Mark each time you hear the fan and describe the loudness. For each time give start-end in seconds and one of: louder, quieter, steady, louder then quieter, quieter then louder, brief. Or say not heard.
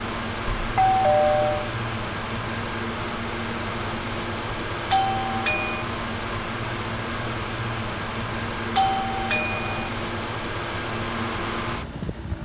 0.0-12.4 steady.